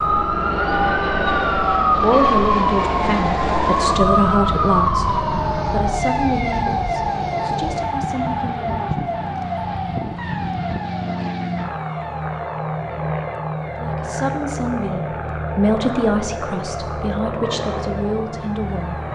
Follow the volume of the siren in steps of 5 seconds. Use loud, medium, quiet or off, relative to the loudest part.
loud, medium, quiet, quiet.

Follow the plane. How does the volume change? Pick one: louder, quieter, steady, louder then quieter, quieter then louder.
steady.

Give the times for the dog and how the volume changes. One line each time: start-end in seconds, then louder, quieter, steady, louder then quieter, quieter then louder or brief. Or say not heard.
not heard.